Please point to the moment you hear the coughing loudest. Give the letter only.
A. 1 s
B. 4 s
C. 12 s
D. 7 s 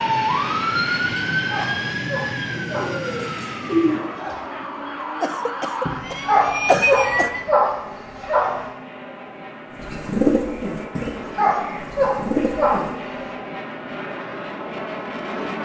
D.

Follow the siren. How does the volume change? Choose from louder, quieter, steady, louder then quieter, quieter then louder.
quieter then louder.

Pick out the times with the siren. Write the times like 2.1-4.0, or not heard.
0.0-7.5.